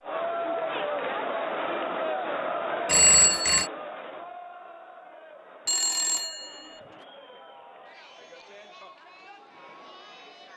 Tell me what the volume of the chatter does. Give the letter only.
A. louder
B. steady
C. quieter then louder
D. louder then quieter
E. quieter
E.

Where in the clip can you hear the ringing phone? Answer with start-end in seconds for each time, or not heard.
2.9-3.7, 5.7-6.8.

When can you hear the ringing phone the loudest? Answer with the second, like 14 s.
3 s.